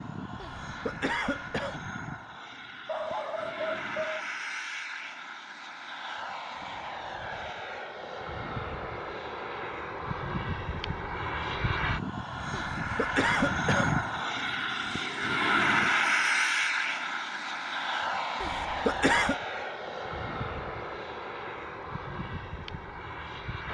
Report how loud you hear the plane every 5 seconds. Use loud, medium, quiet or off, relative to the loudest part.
medium, medium, loud, loud, medium.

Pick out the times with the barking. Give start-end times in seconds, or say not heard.
2.9-4.2.